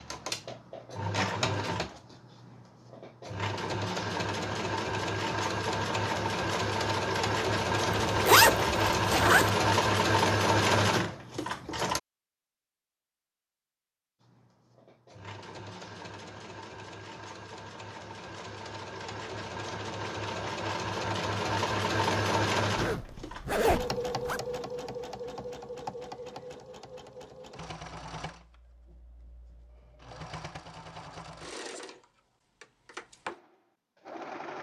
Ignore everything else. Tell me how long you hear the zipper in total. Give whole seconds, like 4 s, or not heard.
3 s.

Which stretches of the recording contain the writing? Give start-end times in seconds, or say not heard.
not heard.